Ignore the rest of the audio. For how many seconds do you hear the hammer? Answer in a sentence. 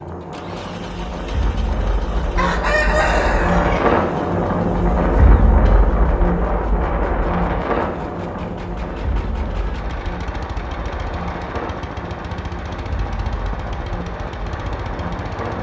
You can't hear the hammer here.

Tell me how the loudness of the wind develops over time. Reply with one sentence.
The loudness of the wind goes up, then down.